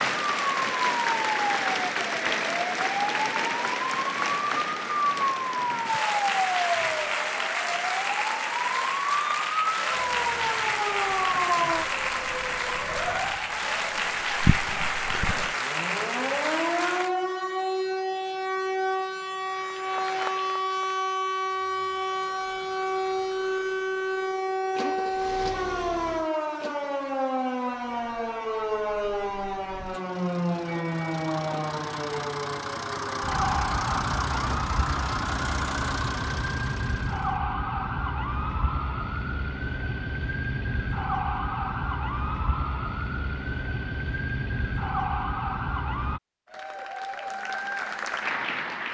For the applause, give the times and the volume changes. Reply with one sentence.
The applause can be heard from 0.0 to 17.1 s, at a steady volume; briefly from 19.4 to 21.1 s; and briefly from 46.5 to 48.8 s.